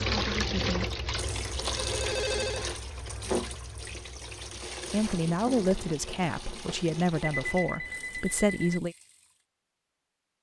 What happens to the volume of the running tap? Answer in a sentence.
The volume of the running tap goes down.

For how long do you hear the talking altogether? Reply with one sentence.
You can hear the talking for 4 seconds altogether.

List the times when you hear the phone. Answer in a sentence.
You can hear the phone from 1.3 to 2.7 s and from 7.2 to 8.8 s.